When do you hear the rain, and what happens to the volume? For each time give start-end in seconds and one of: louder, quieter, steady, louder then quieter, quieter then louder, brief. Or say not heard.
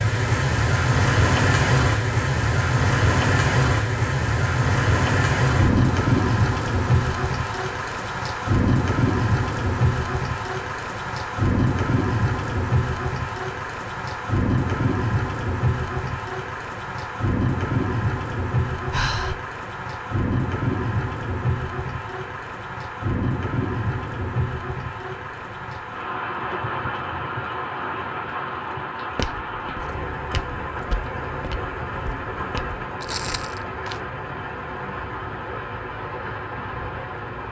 0.0-37.4 quieter.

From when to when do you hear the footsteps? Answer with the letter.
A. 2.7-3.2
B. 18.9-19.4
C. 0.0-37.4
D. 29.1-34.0
D.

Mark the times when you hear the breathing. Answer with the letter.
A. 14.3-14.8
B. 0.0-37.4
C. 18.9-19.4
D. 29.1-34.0
C.